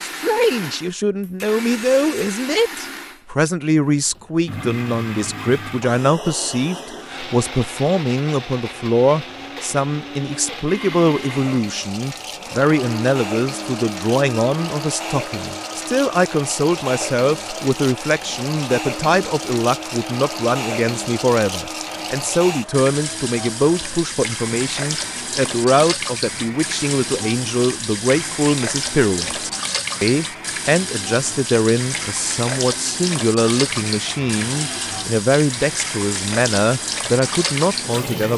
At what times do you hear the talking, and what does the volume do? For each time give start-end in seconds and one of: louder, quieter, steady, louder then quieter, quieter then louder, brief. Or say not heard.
0.0-38.3 steady.